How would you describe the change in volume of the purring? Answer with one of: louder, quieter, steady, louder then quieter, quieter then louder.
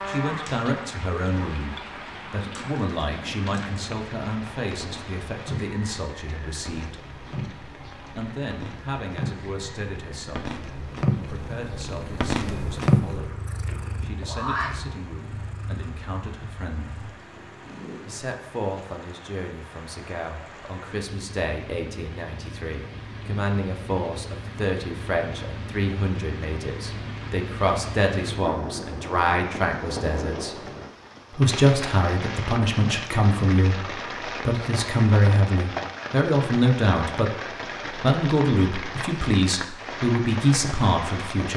louder then quieter.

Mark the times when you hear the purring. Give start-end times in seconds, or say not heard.
0.0-18.2.